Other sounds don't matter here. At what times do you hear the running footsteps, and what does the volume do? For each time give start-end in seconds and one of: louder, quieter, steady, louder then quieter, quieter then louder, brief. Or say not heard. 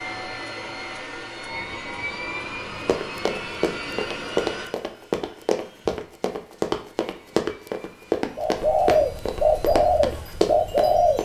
2.9-11.1 steady.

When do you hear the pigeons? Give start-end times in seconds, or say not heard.
8.3-11.1.